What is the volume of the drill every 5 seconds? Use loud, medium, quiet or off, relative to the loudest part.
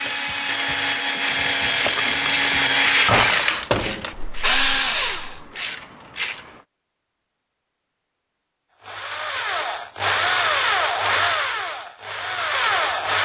loud, medium, loud.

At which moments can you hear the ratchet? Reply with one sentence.
The ratchet can be heard from 1.2 to 6.6 s.